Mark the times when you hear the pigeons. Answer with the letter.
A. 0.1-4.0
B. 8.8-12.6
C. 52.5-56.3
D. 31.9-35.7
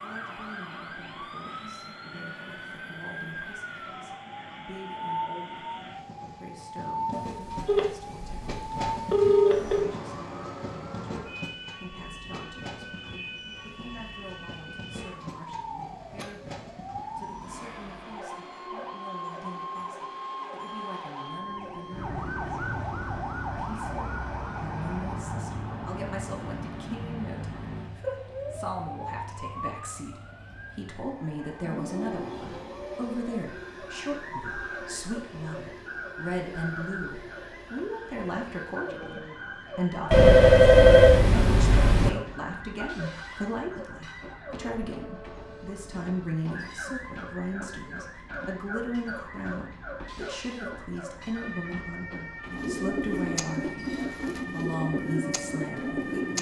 C.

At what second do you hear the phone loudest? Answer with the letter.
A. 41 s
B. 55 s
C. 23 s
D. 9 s
A.